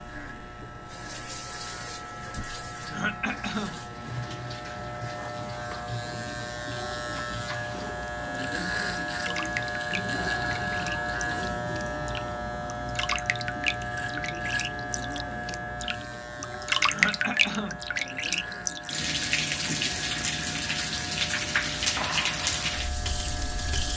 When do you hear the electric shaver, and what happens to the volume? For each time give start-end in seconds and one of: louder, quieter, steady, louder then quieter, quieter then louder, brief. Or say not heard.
0.0-23.9 louder then quieter.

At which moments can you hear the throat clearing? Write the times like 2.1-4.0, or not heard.
2.9-3.9, 16.9-17.9.